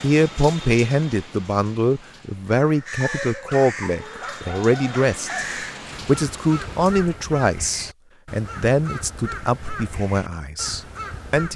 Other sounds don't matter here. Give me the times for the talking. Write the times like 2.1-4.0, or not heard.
0.0-11.5.